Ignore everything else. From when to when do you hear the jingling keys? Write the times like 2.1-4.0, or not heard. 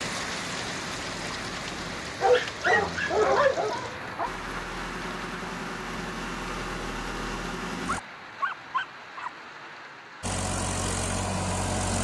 not heard.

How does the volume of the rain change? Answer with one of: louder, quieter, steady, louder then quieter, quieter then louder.
quieter.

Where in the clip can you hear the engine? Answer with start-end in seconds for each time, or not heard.
0.0-2.0, 4.2-8.0, 10.2-11.9.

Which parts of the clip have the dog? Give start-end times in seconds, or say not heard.
2.2-4.3, 7.8-9.3.